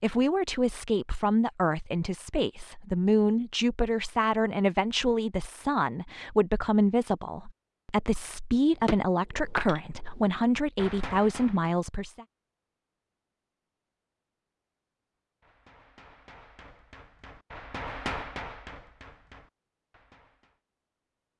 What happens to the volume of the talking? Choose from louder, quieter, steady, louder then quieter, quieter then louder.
steady.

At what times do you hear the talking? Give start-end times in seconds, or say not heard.
0.0-12.2.